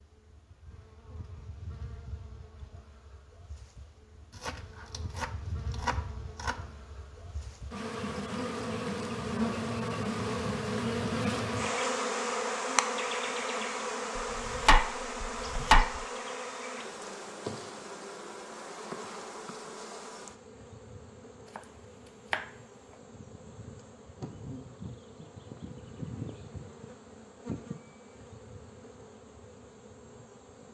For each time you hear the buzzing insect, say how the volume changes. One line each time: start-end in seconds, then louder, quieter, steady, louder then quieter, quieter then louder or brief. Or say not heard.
0.0-30.6 louder then quieter.